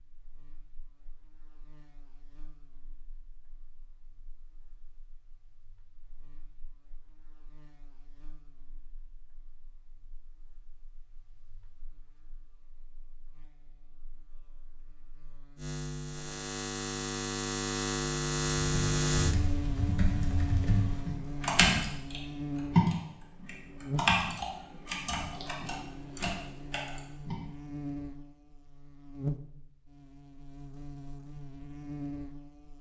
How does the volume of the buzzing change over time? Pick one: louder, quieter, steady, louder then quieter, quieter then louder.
louder then quieter.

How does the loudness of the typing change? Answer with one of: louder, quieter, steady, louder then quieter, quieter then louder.
louder then quieter.